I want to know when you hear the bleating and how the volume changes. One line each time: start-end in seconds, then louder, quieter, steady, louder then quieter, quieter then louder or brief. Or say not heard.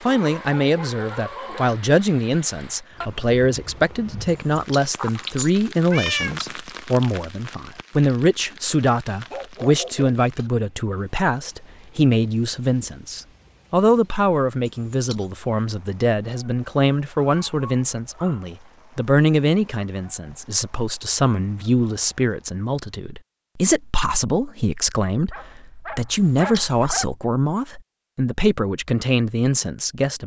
not heard.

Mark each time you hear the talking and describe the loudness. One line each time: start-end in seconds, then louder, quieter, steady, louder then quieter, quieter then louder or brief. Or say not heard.
0.0-30.2 steady.